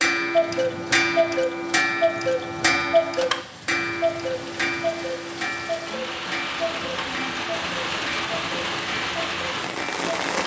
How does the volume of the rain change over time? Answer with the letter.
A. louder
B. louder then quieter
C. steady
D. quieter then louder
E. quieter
A.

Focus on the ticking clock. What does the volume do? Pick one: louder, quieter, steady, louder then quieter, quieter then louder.
quieter.